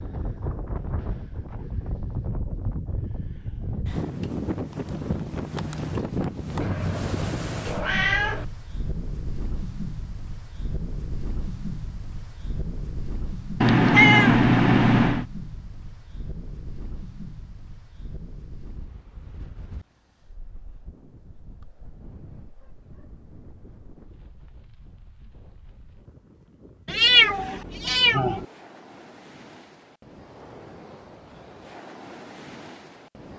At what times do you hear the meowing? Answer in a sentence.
The meowing can be heard from 6.6 to 8.4 s, from 13.6 to 15.2 s and from 26.9 to 28.4 s.